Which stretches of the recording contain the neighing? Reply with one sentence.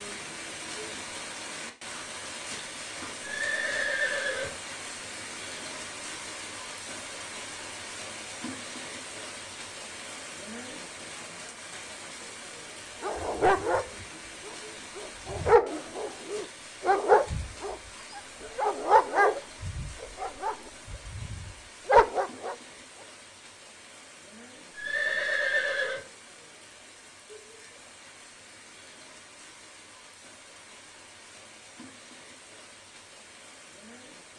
You can hear the neighing from 3.2 to 4.5 s and from 24.8 to 26.0 s.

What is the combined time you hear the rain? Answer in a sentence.
You can hear the rain for 34 seconds altogether.